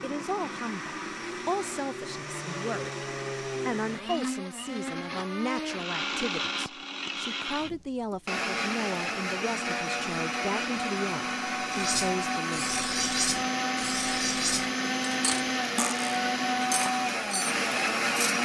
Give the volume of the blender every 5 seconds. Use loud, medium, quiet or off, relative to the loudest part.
medium, medium, loud, loud.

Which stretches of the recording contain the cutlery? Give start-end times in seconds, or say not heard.
11.7-18.4.